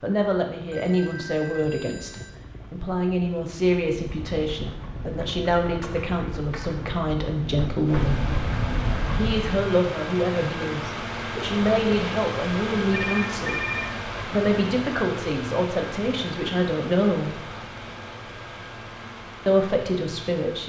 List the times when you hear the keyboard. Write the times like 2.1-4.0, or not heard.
3.9-9.7.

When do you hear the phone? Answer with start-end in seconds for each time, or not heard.
0.7-2.3, 12.9-13.9.